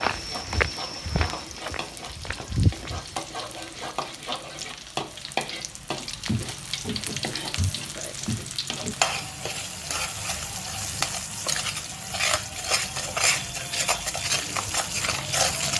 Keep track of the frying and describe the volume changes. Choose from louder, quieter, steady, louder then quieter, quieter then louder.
louder.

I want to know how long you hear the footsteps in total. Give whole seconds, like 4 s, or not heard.
6 s.